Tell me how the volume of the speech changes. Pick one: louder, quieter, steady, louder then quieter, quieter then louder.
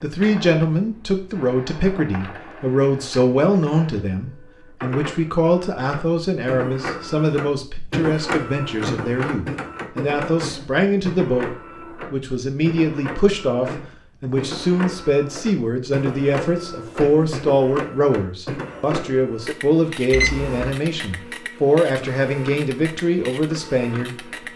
steady.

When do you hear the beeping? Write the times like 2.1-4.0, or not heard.
20.1-20.8.